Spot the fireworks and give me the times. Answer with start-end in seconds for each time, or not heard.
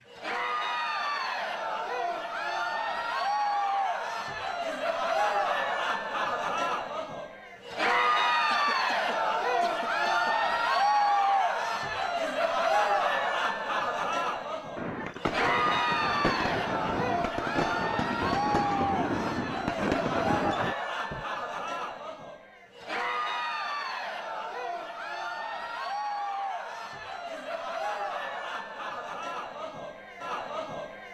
14.8-21.2.